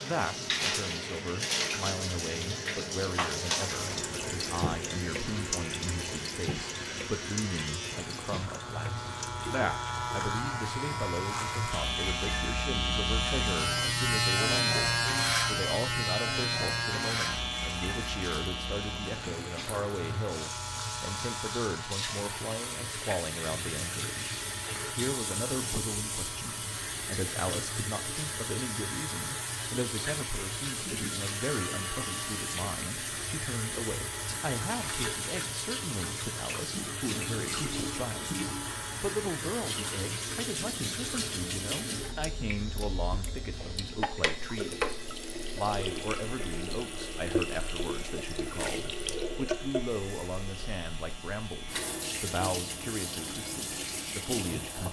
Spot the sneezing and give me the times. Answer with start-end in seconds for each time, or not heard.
43.5-44.3.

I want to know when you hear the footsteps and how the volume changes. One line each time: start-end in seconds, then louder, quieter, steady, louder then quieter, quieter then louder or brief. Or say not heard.
not heard.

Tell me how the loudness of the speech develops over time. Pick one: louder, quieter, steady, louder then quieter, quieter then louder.
steady.